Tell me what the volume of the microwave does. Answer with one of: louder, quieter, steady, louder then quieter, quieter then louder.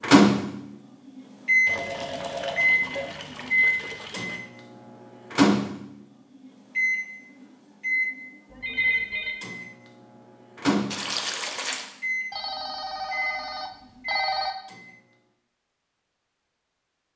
quieter.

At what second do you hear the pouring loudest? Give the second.
11 s.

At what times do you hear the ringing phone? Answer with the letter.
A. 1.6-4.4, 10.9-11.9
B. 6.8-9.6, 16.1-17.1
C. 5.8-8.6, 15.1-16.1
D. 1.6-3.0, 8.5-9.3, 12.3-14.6
D.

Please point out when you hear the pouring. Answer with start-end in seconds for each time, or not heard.
1.6-4.4, 10.9-11.9.